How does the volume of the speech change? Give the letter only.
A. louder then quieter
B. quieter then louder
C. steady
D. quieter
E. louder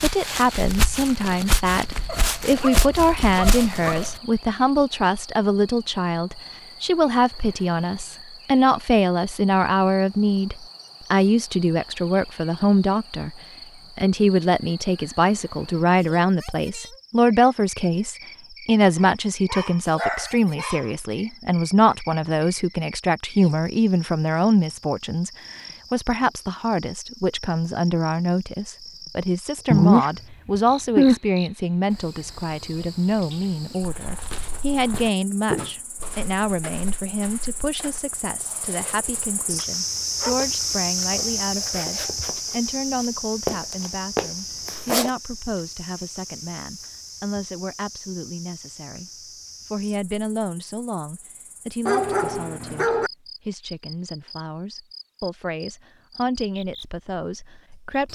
D.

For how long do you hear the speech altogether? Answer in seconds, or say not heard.
58 s.